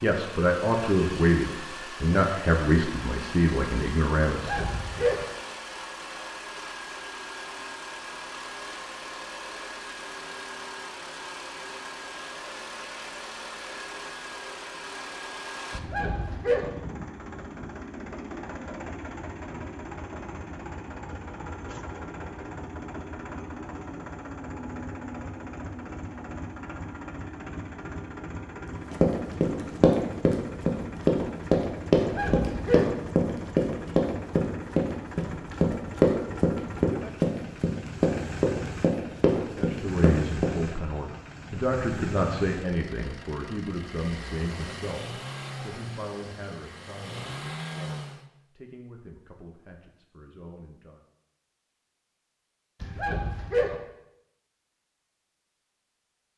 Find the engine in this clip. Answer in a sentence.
You can hear the engine from 0.0 to 48.3 s.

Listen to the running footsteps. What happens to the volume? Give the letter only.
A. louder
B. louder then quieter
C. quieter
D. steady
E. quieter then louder
D.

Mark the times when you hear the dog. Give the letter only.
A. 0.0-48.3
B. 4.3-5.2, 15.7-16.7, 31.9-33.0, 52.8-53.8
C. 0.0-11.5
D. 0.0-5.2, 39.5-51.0
B.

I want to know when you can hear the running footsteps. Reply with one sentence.
You can hear the running footsteps from 29.0 to 40.5 s.